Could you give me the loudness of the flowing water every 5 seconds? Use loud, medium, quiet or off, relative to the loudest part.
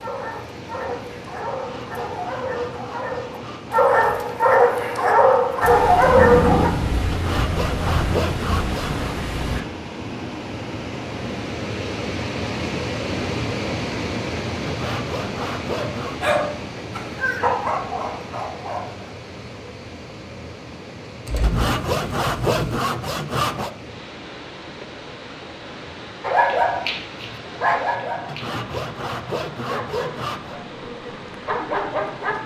medium, medium, loud, medium, medium, medium, medium.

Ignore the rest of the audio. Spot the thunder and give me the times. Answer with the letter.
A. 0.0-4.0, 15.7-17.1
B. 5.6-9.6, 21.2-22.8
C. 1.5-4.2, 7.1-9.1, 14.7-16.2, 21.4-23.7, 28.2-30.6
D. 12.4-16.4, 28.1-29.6
B.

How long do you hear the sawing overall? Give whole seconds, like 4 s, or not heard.
11 s.